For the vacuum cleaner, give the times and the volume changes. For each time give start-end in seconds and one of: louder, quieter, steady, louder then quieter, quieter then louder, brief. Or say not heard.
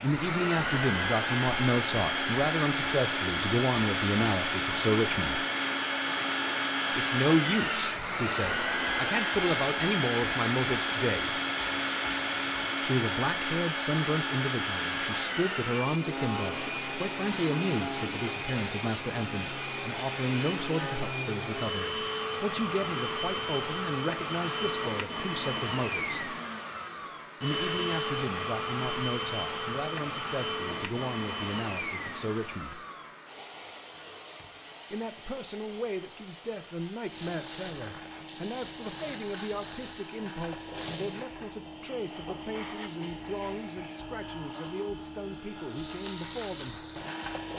0.0-47.5 quieter.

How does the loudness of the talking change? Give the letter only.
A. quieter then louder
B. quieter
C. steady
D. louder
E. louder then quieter
B.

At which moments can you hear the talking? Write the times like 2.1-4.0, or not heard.
0.0-5.5, 6.9-11.3, 12.8-26.4, 27.4-32.8, 34.9-46.9.